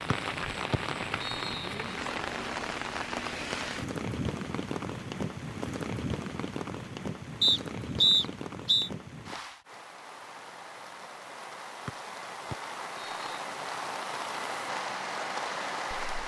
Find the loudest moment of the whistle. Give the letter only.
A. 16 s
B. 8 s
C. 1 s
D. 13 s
B.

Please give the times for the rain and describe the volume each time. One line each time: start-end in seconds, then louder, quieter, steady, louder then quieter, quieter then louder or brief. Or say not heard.
0.0-16.2 quieter then louder.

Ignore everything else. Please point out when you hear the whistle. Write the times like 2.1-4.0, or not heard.
0.1-1.7, 7.4-8.9, 11.8-13.2.